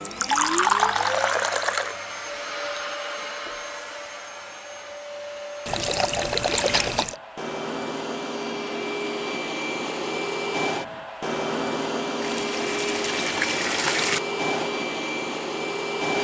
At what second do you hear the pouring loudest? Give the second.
1 s.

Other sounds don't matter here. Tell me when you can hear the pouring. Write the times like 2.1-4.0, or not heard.
0.0-1.9, 5.7-7.2, 12.2-14.2.